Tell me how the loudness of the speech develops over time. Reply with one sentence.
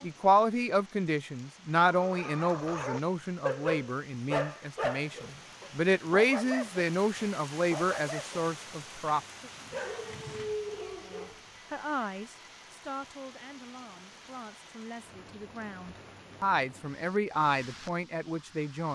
The loudness of the speech goes down, then up.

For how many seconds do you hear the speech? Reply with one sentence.
You can hear the speech for 17 seconds altogether.